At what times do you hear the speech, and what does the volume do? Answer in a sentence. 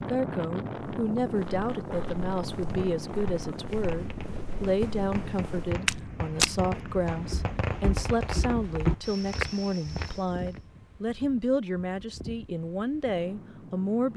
The speech can be heard from 0.0 to 14.1 s, at a steady volume.